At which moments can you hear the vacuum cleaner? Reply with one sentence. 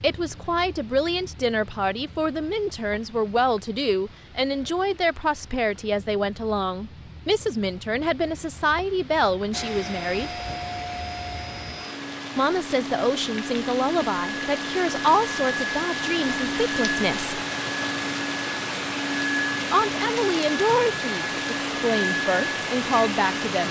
You can hear the vacuum cleaner from 9.5 to 23.6 s.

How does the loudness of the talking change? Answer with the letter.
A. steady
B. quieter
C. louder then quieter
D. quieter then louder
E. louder
A.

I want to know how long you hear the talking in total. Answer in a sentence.
You can hear the talking for 19 seconds altogether.